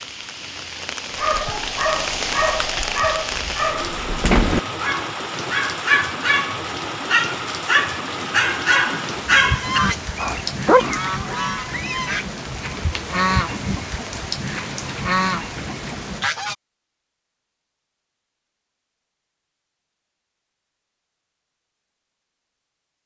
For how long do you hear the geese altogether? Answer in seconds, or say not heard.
7 s.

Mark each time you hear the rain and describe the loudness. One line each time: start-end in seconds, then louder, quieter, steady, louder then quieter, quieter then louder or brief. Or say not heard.
0.0-16.2 steady.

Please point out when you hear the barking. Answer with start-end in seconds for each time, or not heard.
1.1-11.3.